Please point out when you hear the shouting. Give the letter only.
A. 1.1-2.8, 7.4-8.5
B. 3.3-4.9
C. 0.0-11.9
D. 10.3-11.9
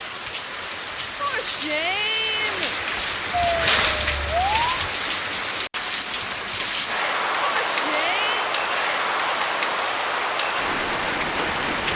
A.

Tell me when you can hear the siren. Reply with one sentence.
You can hear the siren from 3.3 to 4.9 s.